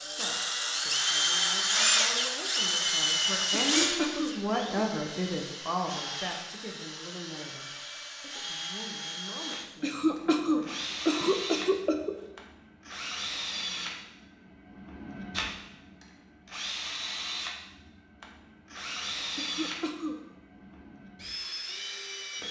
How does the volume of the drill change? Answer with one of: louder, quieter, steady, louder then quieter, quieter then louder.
quieter.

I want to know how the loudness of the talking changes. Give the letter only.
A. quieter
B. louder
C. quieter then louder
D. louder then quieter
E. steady
D.